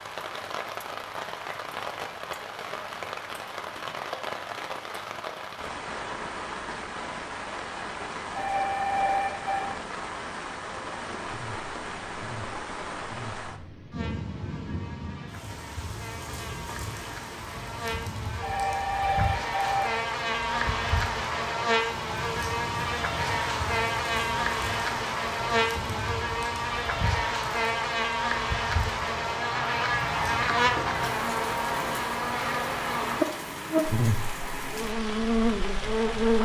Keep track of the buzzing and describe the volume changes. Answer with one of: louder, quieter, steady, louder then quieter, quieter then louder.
louder.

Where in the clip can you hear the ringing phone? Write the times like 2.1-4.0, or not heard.
8.3-9.7, 18.4-19.9.